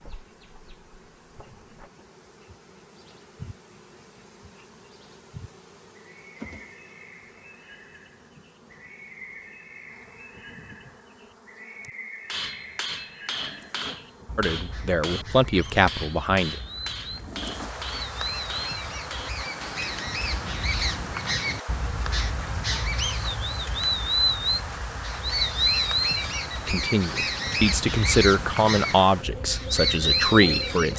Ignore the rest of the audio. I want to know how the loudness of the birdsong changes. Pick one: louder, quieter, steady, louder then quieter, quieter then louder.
louder.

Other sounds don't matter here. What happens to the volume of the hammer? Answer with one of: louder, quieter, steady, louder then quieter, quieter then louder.
quieter.